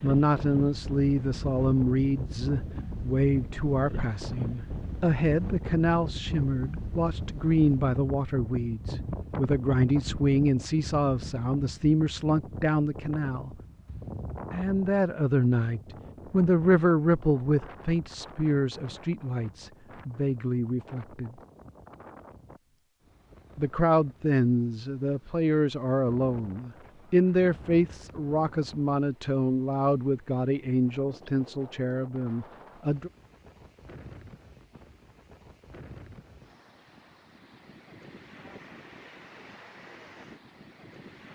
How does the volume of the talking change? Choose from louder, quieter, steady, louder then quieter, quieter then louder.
steady.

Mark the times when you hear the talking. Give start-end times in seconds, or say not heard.
0.0-13.5, 14.5-21.4, 23.6-33.1.